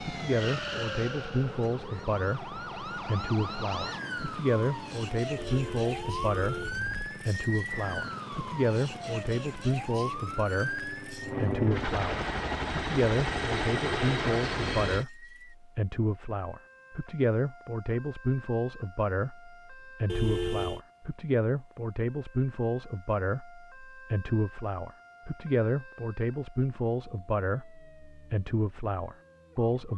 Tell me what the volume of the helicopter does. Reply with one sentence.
The loudness of the helicopter goes up.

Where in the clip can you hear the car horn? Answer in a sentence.
The car horn can be heard from 5.3 to 6.9 s and from 20.1 to 20.8 s.